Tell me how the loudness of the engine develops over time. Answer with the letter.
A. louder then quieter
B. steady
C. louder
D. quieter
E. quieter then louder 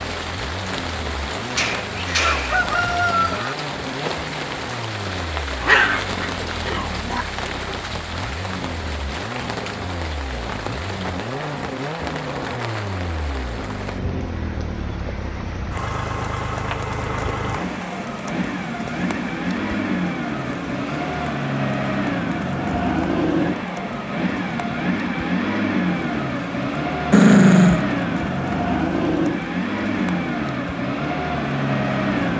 C.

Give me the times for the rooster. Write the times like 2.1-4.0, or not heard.
1.6-3.5.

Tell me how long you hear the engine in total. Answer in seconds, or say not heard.
32 s.